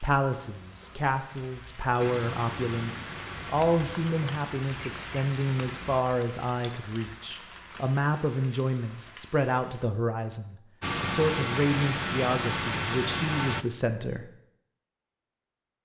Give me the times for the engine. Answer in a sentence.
The engine can be heard from 1.9 to 6.0 s and from 10.8 to 13.7 s.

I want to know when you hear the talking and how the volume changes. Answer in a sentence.
The talking can be heard from 0.0 to 14.3 s, at a steady volume.